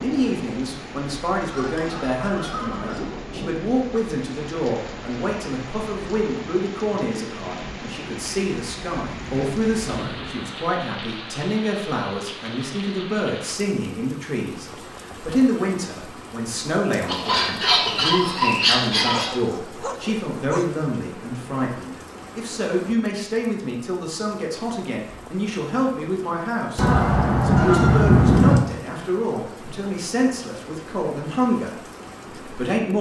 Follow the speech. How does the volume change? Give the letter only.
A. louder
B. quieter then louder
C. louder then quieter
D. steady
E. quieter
D.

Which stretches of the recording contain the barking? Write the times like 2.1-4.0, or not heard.
19.0-20.8.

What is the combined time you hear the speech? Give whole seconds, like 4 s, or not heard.
33 s.